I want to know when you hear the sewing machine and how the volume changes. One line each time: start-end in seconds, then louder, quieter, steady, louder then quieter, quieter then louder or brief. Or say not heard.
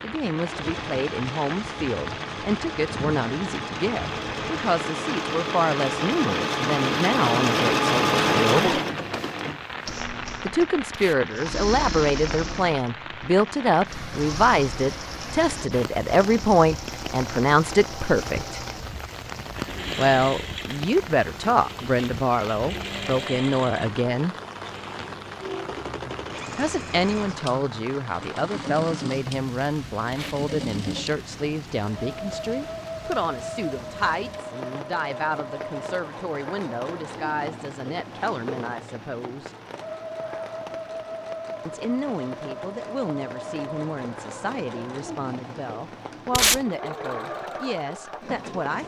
0.0-48.8 quieter.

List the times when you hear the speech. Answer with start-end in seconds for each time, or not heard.
0.0-8.8, 10.4-18.6, 19.9-24.4, 26.6-39.5, 41.6-48.8.